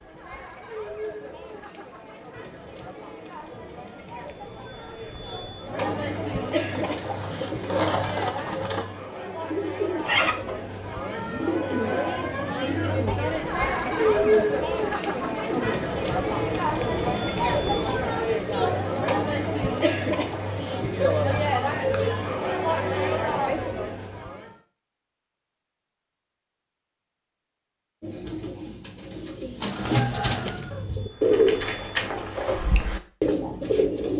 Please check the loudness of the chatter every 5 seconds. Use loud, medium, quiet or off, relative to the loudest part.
quiet, medium, loud, loud, loud, off, off.